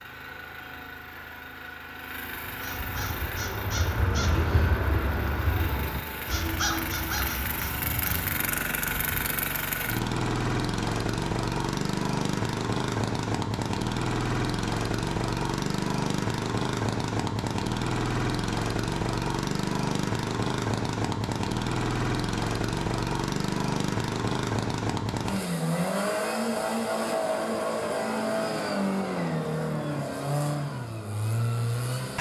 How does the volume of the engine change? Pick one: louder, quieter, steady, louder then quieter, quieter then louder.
louder.